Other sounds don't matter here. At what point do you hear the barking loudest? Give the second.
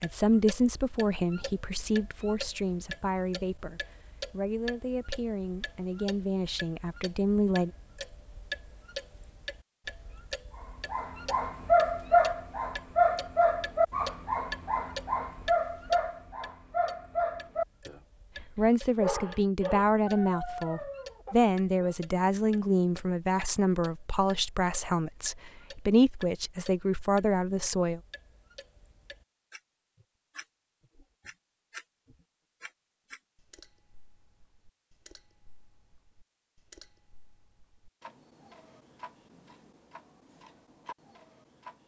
12 s.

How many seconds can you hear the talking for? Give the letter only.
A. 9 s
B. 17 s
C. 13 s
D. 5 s
B.